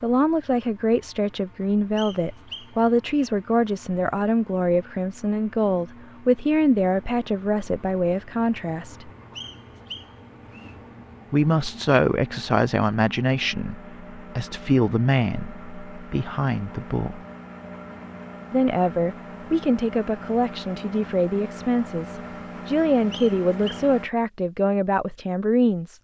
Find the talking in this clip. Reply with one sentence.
The talking can be heard from 0.0 to 9.1 s, from 11.3 to 17.2 s and from 18.5 to 25.9 s.